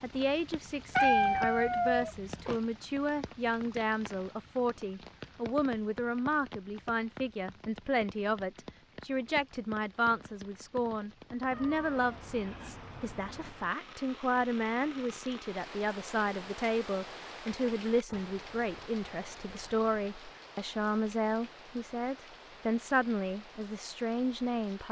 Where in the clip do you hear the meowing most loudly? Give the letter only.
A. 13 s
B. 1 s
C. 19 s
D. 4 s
B.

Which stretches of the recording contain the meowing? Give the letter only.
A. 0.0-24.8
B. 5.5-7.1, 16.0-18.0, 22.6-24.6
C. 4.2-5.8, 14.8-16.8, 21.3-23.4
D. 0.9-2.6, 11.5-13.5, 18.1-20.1
D.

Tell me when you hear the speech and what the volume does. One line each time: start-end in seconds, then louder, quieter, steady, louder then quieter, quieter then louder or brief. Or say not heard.
0.0-24.8 steady.